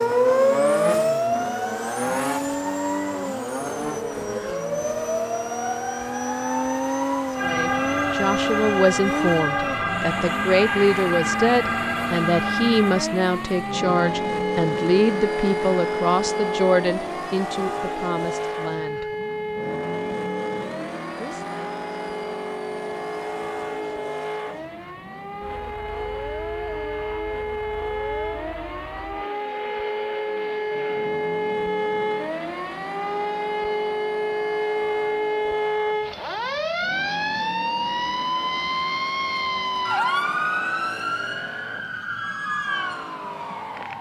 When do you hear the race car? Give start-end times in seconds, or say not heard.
0.0-43.9.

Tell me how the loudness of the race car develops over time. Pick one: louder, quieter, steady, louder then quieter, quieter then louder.
quieter.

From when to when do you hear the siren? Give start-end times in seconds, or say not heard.
0.0-43.9.